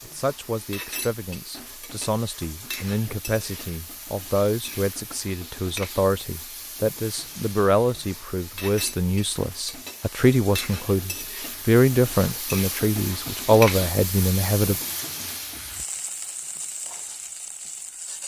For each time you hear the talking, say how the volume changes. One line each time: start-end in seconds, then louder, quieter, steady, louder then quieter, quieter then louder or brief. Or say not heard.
0.0-14.8 louder.